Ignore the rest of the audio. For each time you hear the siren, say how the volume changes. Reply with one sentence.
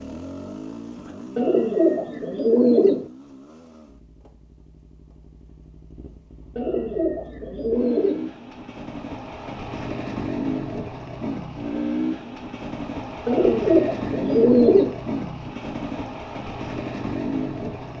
You can't hear the siren here.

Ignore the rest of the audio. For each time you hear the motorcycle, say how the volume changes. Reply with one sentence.
The motorcycle can be heard from 0.0 to 17.9 s, getting quieter then louder.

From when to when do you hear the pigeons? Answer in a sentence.
You can hear the pigeons from 1.4 to 3.0 s, from 6.5 to 8.2 s and from 13.2 to 15.0 s.